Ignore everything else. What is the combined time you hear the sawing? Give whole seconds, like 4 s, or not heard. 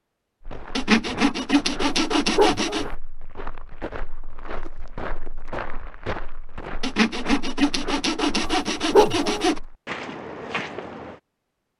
5 s.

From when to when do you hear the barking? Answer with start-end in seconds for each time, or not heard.
1.9-2.9, 8.4-9.4.